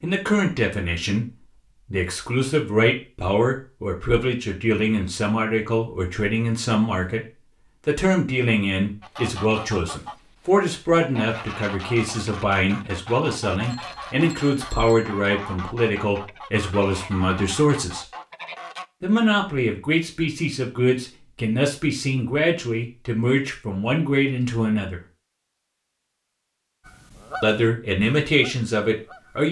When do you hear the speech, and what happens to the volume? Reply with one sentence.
You can hear the speech from 0.0 to 18.1 s, at a steady volume; from 19.0 to 25.0 s, at a steady volume; and briefly from 27.4 to 29.4 s.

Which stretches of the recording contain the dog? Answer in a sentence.
The dog can't be heard in this clip.